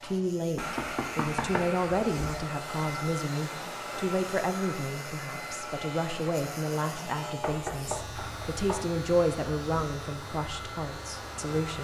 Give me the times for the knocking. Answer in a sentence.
You can hear the knocking from 0.6 to 1.6 s and from 7.4 to 8.9 s.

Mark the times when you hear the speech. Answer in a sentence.
You can hear the speech from 0.0 to 11.7 s.